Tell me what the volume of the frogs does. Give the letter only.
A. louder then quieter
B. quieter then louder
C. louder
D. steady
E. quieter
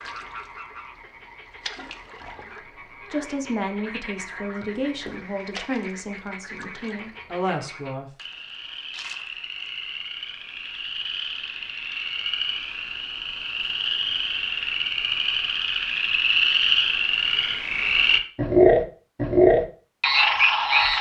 C.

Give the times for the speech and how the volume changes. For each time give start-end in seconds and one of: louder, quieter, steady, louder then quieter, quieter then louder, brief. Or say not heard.
3.1-8.1 quieter then louder.